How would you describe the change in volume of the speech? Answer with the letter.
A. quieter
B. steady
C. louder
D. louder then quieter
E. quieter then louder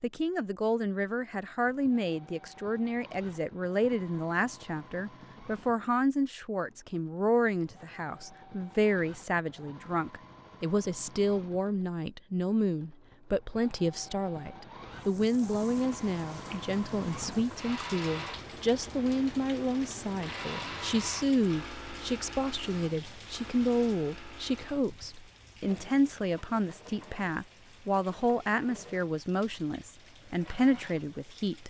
B.